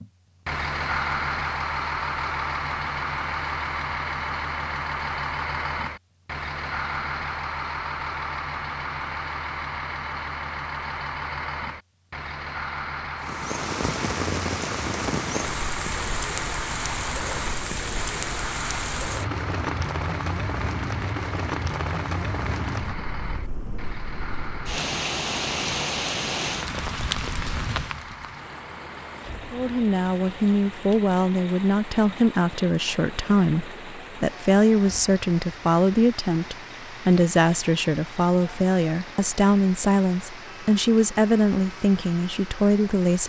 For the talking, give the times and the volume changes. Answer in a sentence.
You can hear the talking from 29.5 to 43.2 s, at a steady volume.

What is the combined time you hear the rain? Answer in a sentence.
You can hear the rain for 30 seconds altogether.